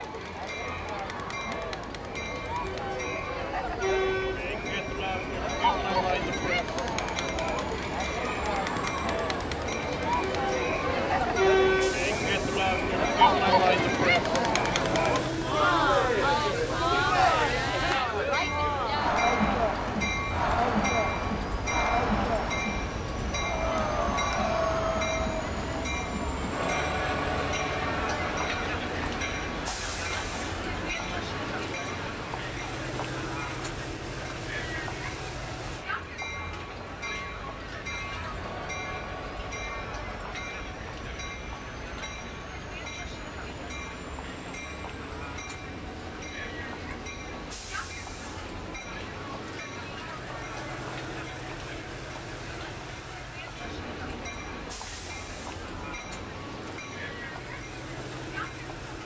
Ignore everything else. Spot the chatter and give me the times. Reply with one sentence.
The chatter can be heard from 0.0 to 59.0 s.